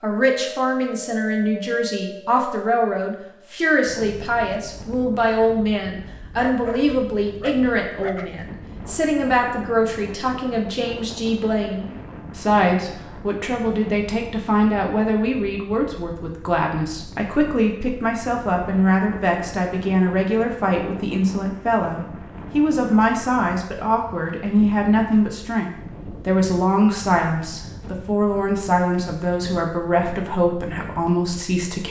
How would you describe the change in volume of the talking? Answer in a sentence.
The loudness of the talking stays about the same.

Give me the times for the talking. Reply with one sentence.
The talking can be heard from 0.0 to 31.8 s.